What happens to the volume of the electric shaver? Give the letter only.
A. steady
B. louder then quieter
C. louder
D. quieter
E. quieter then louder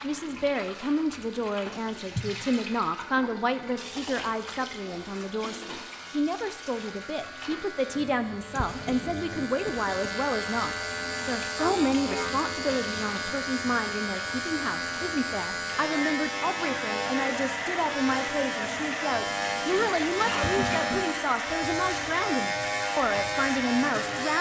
C.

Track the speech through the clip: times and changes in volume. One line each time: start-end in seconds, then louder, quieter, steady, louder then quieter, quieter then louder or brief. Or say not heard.
0.0-24.3 steady.